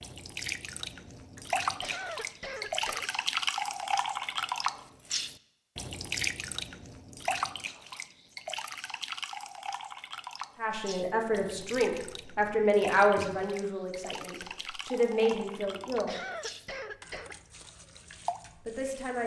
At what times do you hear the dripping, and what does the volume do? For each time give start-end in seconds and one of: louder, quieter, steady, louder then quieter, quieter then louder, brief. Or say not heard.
0.0-19.2 quieter.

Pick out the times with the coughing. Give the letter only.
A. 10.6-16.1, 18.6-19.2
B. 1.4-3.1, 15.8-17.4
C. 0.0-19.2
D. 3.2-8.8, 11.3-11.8
B.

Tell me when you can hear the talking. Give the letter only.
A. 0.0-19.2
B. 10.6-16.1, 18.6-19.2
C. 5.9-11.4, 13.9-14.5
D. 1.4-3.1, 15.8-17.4
B.